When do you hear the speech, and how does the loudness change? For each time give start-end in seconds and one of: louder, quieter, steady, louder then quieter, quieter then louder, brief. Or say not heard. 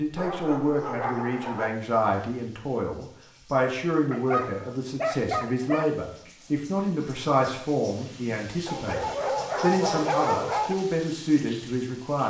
0.0-12.2 steady.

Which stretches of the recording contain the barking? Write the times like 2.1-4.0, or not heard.
0.1-1.7, 4.1-5.8, 8.7-10.8.